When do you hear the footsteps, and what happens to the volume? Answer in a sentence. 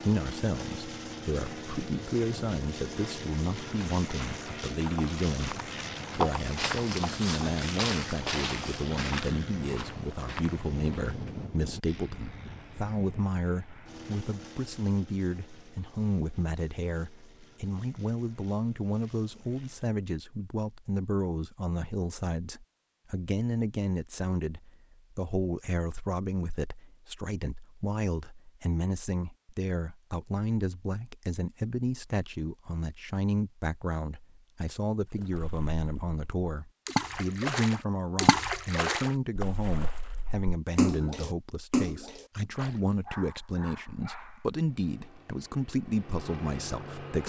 The footsteps can be heard from 3.5 to 11.3 s, getting louder then quieter.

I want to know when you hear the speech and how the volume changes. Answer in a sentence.
The speech can be heard from 0.0 to 47.2 s, at a steady volume.